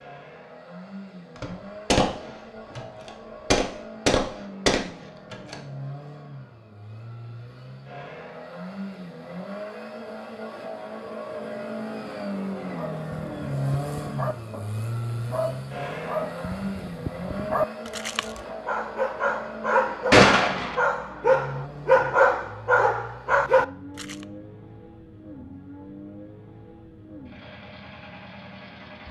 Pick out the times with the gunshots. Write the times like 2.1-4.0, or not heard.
1.4-2.1, 2.8-5.5, 20.1-20.8.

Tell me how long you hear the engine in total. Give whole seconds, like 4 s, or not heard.
29 s.